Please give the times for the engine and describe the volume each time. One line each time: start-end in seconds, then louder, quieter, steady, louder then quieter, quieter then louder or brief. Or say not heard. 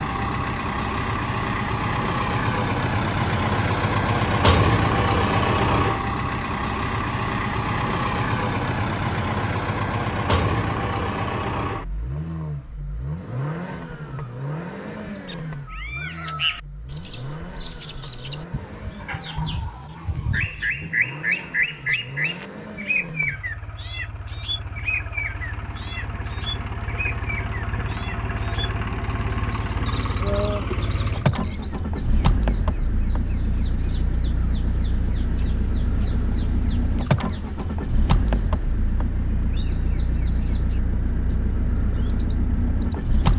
0.0-43.3 quieter then louder.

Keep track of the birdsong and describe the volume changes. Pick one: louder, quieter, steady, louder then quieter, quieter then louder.
quieter.